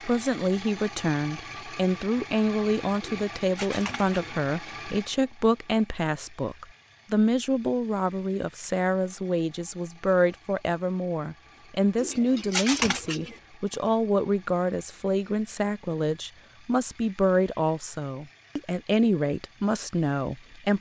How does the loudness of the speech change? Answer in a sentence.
The loudness of the speech stays about the same.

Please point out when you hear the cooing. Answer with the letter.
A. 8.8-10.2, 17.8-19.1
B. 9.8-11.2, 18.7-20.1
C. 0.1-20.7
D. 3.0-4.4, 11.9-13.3
D.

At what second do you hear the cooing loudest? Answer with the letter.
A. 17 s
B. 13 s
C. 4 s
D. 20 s
B.